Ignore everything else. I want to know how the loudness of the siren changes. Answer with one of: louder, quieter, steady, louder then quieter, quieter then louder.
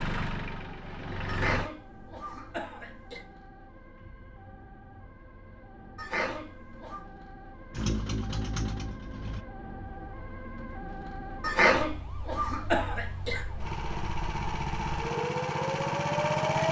louder.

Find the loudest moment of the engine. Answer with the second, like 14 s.
16 s.